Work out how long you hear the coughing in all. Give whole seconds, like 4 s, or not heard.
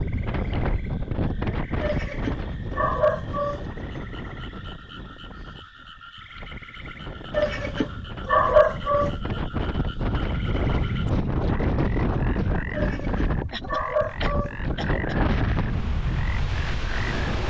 2 s.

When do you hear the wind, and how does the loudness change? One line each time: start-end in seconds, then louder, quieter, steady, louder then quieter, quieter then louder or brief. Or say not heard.
0.0-17.4 quieter then louder.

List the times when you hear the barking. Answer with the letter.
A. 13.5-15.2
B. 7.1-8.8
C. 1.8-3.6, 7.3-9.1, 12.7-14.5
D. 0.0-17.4
C.